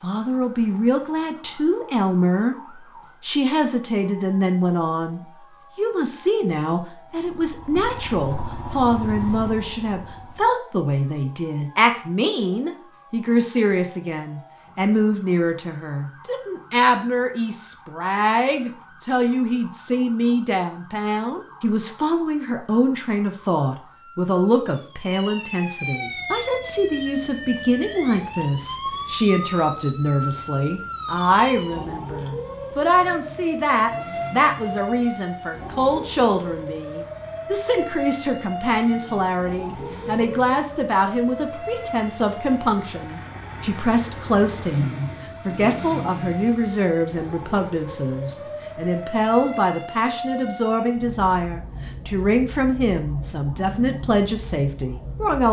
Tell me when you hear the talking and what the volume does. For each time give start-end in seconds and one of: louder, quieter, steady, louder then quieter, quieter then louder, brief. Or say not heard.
0.0-55.4 steady.